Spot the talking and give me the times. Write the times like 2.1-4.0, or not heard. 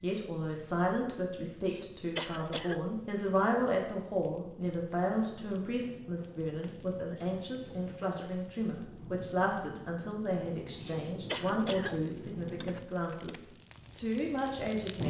0.0-15.0.